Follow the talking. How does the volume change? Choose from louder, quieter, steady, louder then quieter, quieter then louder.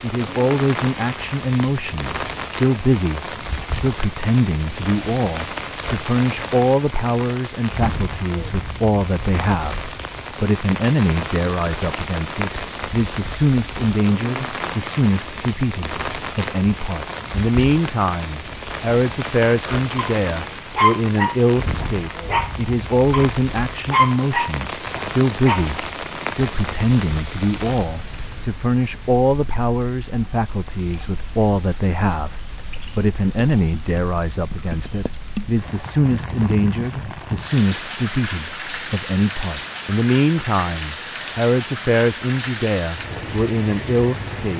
steady.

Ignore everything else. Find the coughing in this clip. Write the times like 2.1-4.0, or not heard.
not heard.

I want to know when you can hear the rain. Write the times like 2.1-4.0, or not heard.
0.0-44.5.